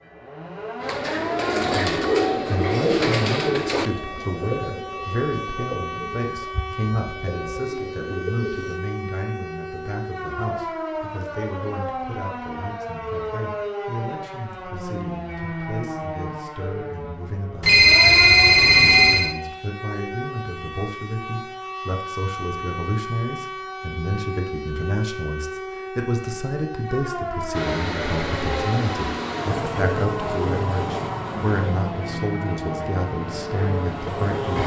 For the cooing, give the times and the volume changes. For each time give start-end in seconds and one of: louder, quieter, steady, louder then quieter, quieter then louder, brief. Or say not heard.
0.8-8.8 quieter.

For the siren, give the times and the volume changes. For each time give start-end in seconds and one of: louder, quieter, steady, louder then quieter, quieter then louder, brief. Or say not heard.
0.0-34.6 steady.